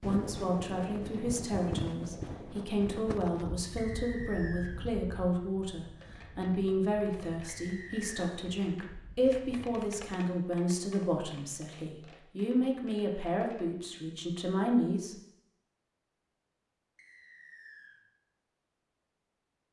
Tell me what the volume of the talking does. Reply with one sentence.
The volume of the talking stays about the same.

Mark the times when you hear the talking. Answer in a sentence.
The talking can be heard from 0.0 to 15.2 s.